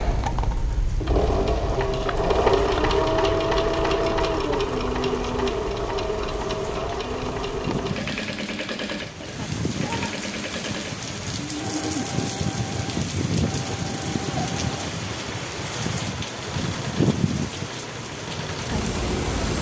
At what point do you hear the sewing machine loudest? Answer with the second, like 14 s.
3 s.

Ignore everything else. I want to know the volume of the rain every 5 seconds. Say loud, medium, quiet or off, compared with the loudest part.
quiet, medium, loud, loud.